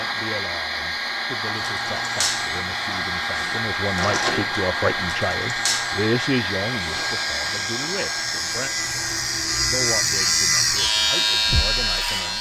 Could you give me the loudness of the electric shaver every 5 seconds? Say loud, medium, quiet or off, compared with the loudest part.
medium, medium, loud.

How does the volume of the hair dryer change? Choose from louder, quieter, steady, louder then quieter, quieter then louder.
quieter.